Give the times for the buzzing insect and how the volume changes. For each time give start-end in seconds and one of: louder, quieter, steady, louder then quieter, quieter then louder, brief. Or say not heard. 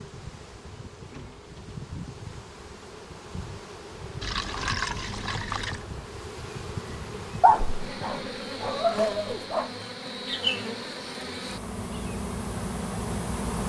0.0-13.6 louder.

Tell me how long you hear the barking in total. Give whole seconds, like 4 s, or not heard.
2 s.